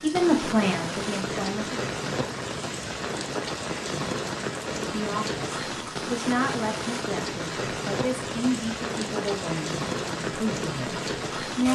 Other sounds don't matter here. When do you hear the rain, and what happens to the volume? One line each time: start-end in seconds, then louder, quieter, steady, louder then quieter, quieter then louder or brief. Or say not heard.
0.0-11.7 steady.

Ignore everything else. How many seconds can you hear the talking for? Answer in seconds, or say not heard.
9 s.